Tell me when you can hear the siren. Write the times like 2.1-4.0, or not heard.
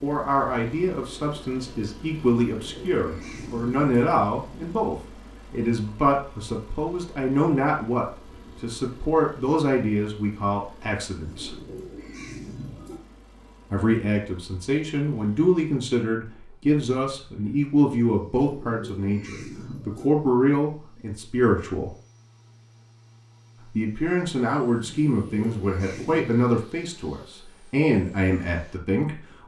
not heard.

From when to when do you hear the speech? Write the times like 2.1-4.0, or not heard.
0.0-11.6, 13.7-21.9, 23.6-29.4.